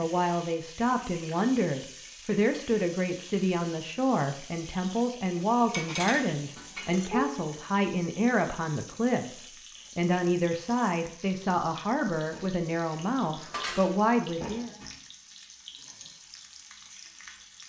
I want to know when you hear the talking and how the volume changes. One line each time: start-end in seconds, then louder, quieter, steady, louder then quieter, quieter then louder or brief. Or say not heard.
0.0-14.7 steady.